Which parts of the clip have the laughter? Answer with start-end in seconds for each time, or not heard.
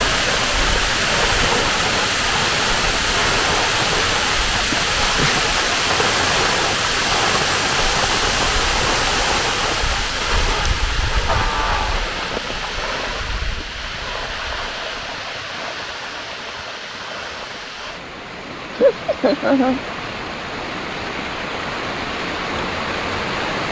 4.7-5.4, 11.2-12.0, 18.8-19.8.